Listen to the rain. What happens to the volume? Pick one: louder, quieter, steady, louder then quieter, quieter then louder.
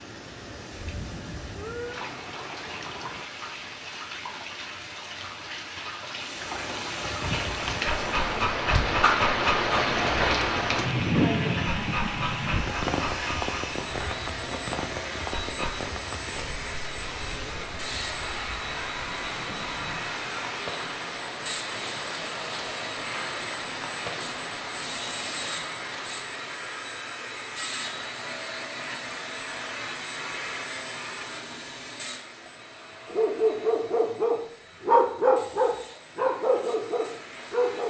louder then quieter.